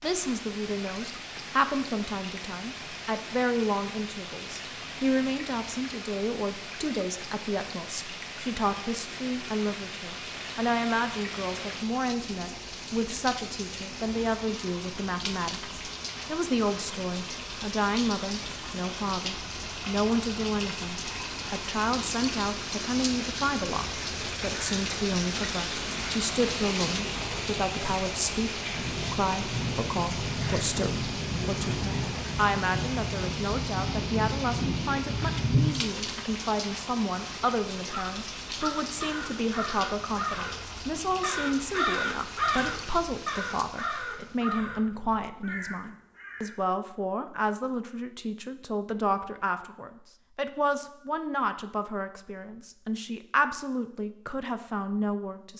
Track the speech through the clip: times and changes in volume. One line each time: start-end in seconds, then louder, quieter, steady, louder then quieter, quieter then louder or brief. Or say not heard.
0.0-55.5 steady.